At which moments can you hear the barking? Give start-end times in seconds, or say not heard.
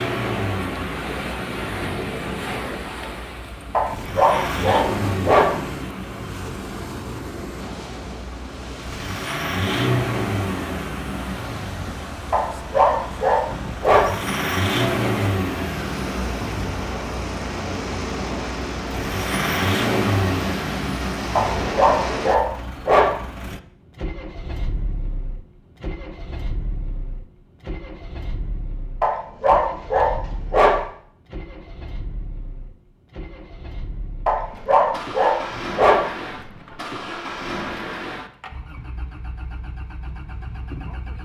3.7-5.5, 12.3-14.1, 21.4-23.1, 29.0-30.8, 34.2-36.0.